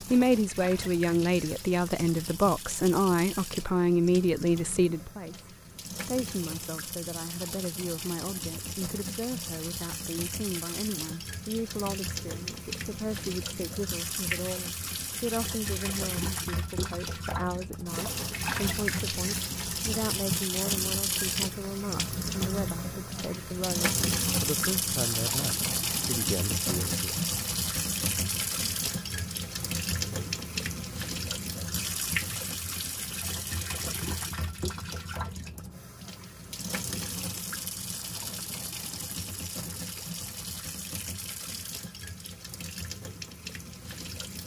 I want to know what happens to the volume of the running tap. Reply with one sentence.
The volume of the running tap goes up, then down.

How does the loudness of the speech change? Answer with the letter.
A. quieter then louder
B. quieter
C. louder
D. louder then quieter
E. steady
B.